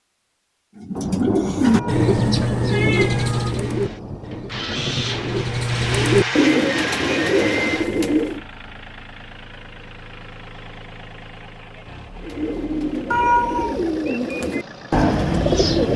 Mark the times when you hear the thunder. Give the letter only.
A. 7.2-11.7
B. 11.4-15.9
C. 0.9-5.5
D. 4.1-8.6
C.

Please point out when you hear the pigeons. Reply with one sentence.
You can hear the pigeons from 0.8 to 8.4 s and from 12.2 to 15.9 s.